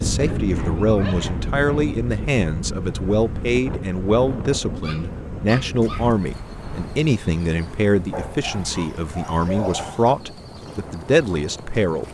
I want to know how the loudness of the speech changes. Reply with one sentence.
The volume of the speech stays about the same.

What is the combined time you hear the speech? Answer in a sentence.
You can hear the speech for 12 seconds altogether.